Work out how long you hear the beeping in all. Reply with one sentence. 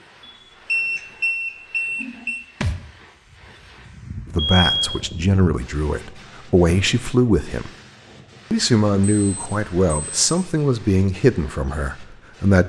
You can hear the beeping for 4 seconds altogether.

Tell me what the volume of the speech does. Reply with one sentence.
The loudness of the speech stays about the same.